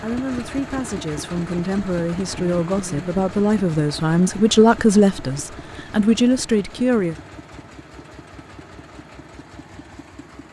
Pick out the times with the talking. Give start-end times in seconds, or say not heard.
0.0-7.2.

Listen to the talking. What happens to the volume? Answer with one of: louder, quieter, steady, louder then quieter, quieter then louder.
louder.